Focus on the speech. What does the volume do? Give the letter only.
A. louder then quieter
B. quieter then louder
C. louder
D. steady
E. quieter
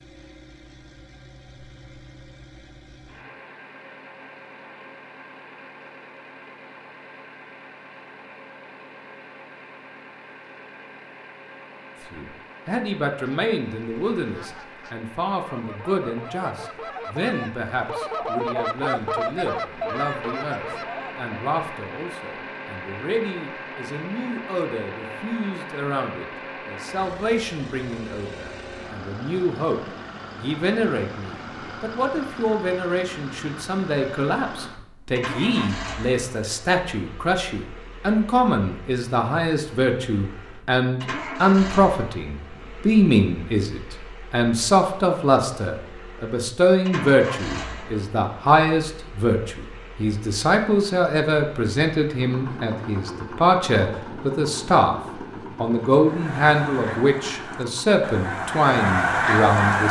C.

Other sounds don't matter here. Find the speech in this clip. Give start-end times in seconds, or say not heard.
12.1-29.8, 30.4-55.0, 55.5-59.8.